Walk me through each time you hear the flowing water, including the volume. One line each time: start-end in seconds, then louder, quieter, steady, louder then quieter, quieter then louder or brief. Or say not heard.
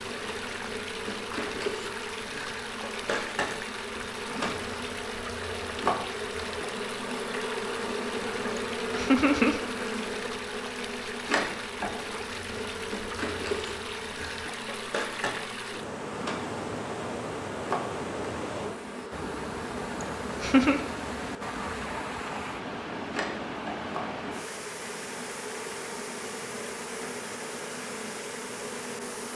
0.0-29.3 steady.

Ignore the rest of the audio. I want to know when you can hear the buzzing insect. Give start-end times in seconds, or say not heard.
0.0-29.3.